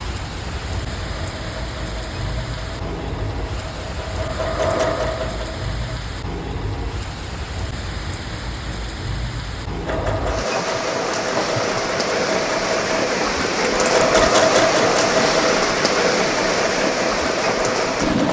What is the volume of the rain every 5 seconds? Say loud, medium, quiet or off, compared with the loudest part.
medium, medium, loud, loud.